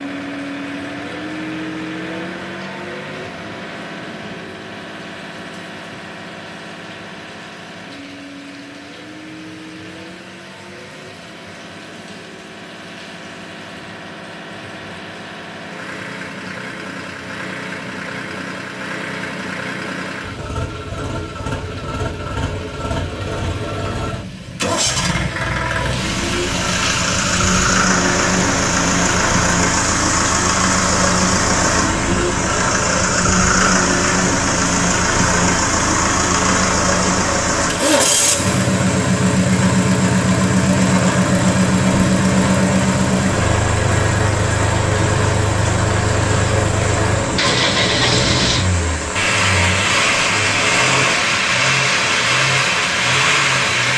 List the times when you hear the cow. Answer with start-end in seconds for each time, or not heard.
not heard.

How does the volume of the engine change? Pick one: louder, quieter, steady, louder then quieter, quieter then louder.
louder.